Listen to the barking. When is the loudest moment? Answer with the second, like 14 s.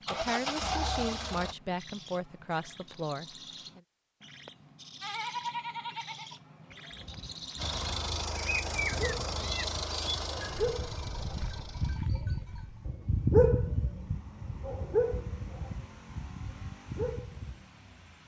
13 s.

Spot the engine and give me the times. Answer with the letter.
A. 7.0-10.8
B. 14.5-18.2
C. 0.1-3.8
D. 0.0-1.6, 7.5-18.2
D.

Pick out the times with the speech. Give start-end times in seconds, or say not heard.
0.1-3.8.